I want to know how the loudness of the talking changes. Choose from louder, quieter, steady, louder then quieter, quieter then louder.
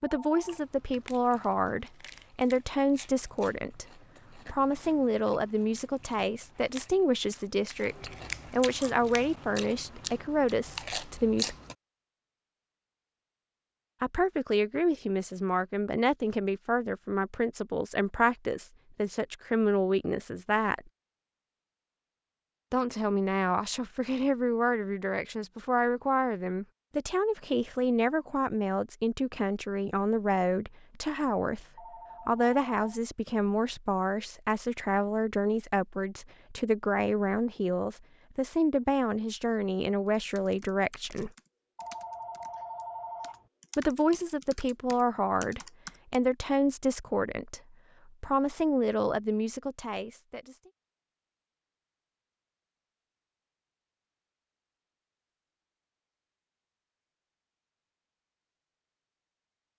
steady.